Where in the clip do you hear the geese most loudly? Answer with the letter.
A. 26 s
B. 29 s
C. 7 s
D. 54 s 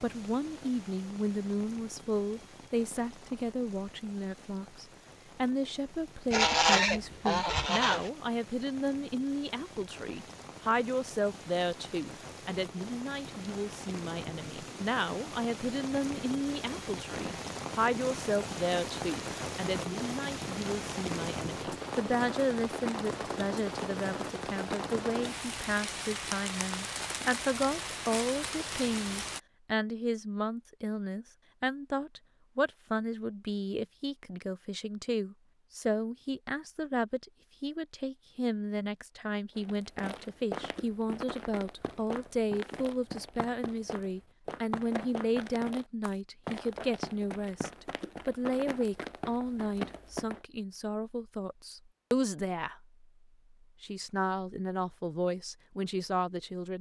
C.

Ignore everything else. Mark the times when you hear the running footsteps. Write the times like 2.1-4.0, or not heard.
39.5-50.4.